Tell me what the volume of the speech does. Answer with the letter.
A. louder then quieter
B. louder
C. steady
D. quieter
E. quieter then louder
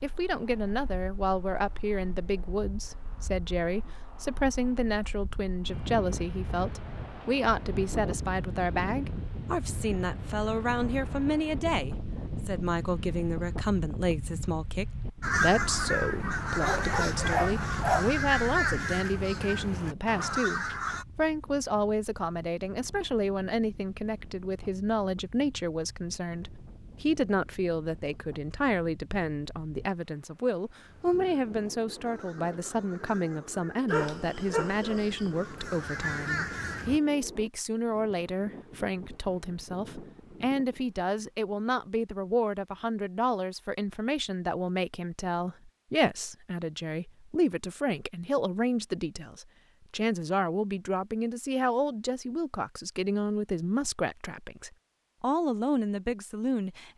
C.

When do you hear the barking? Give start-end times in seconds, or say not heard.
16.6-18.1, 33.9-35.4.